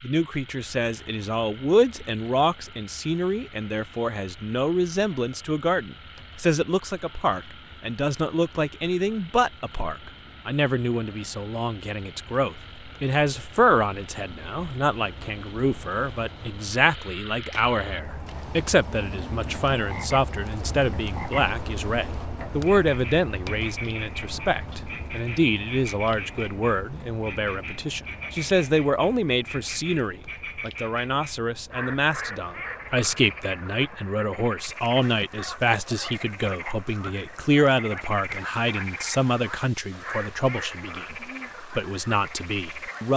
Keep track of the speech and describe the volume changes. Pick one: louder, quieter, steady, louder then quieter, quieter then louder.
steady.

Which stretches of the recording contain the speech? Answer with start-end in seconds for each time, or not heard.
0.0-43.1.